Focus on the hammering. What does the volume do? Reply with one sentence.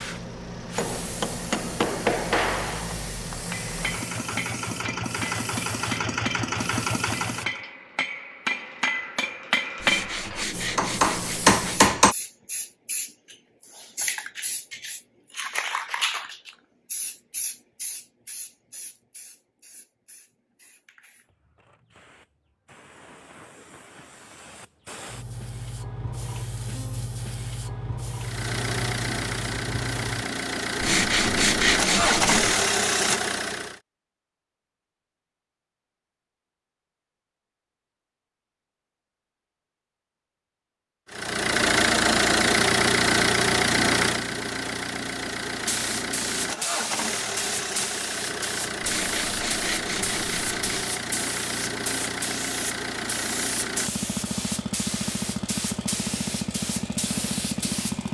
The loudness of the hammering goes down, then up.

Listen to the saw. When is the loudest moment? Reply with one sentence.
The volume of the saw peaks at 32 seconds.